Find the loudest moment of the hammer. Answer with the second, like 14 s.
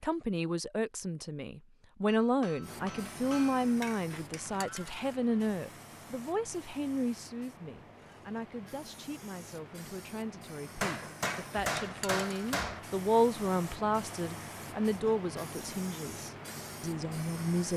12 s.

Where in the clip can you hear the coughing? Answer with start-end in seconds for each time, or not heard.
not heard.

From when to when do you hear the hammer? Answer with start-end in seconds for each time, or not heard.
2.0-3.7, 10.8-12.8.